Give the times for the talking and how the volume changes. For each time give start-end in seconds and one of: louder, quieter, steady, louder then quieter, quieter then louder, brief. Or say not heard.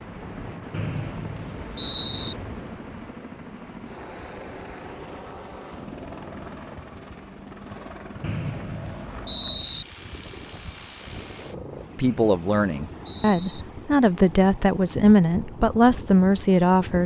11.9-17.0 louder.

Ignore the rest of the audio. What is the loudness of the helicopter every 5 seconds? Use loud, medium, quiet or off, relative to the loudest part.
loud, loud, loud, off.